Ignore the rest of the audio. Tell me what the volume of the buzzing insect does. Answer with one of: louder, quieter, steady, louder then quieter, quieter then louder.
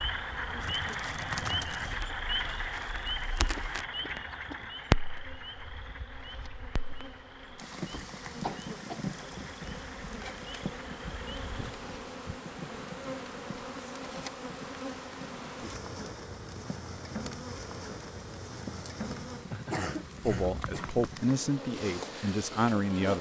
louder.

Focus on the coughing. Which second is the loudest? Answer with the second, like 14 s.
20 s.